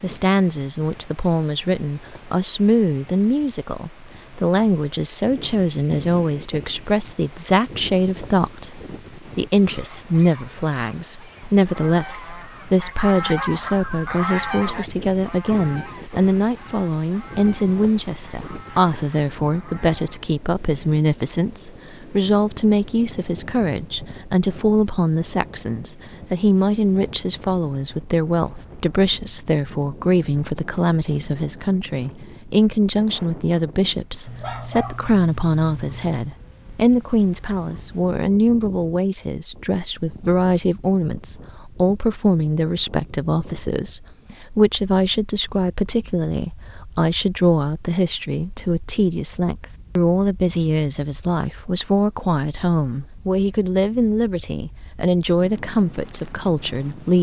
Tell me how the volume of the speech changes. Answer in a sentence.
The volume of the speech stays about the same.